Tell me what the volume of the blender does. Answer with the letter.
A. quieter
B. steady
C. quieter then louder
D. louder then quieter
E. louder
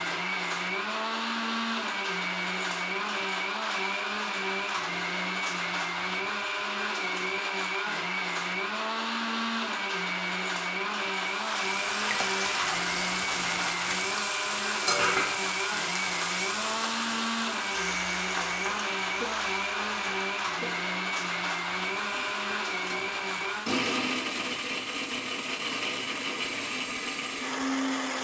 B.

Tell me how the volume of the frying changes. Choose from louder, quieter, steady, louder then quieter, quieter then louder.
quieter.